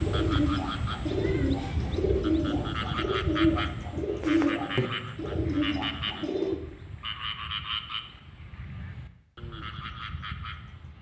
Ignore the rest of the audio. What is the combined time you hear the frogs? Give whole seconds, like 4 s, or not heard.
11 s.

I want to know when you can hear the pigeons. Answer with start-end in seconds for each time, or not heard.
0.0-6.6.